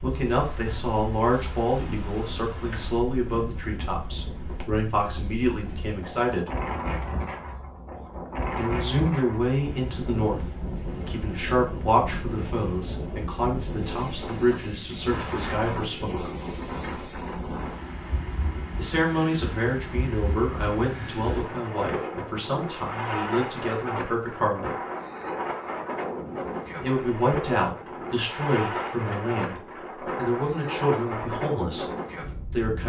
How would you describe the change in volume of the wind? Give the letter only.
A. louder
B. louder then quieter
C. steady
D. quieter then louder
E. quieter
A.